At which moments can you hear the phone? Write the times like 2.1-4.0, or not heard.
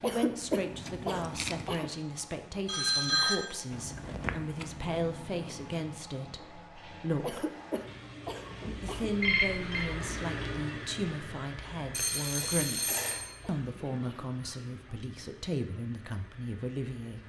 2.6-3.4, 9.2-9.8, 11.9-13.3.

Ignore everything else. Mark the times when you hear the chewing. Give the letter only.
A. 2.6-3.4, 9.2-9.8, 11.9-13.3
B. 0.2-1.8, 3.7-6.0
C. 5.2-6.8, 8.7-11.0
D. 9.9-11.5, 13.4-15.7
B.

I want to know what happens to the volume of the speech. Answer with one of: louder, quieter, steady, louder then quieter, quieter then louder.
steady.